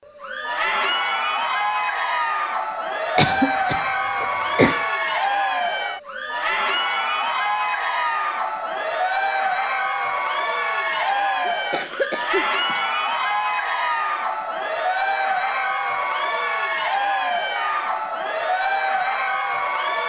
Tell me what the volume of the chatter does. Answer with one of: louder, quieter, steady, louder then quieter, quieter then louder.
steady.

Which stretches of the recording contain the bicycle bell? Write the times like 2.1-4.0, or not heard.
not heard.